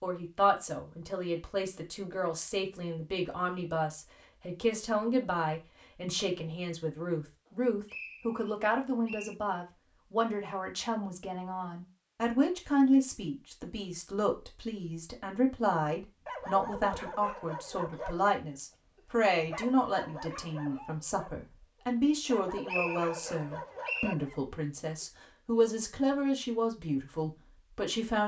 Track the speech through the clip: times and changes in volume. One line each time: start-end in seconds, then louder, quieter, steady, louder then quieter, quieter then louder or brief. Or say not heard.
0.0-28.2 steady.